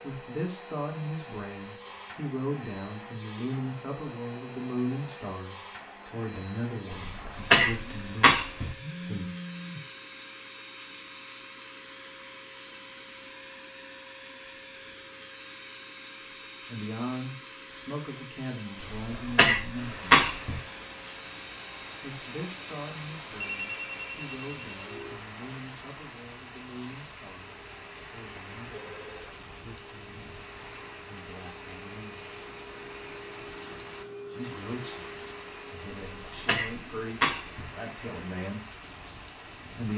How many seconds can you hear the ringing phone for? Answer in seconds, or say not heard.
3 s.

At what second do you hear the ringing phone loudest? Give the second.
24 s.